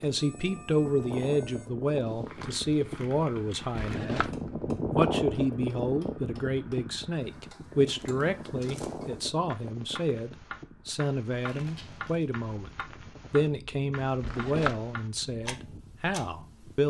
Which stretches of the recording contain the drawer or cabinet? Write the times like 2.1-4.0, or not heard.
3.7-4.5, 14.2-14.8.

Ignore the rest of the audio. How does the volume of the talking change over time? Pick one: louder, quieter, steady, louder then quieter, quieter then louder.
steady.